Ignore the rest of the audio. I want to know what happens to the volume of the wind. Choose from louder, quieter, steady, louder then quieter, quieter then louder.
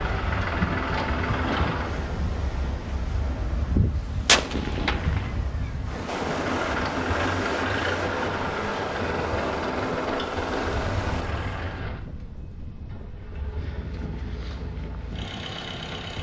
quieter.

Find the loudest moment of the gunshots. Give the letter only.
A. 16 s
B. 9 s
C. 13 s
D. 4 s
D.